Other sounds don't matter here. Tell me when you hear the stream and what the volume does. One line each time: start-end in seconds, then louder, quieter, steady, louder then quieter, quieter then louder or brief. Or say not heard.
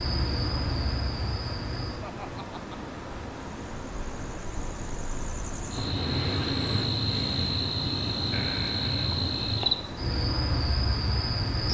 0.0-11.6 steady.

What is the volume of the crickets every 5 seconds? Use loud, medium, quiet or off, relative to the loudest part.
medium, loud, loud.